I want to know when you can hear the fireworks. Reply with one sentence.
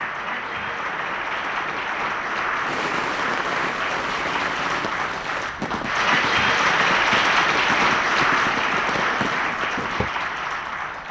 The fireworks can be heard from 2.6 to 10.1 s.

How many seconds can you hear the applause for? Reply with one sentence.
The applause can be heard for 11 seconds in total.